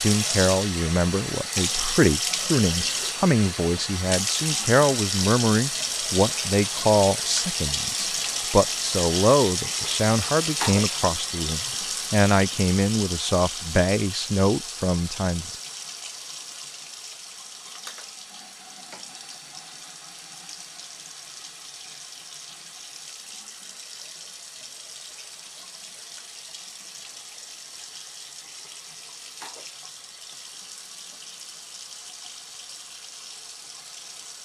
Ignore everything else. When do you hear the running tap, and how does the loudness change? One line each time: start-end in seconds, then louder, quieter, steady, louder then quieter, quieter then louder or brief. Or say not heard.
0.0-34.4 quieter.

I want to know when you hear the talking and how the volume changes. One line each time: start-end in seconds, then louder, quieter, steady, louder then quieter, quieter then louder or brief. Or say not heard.
0.0-15.6 steady.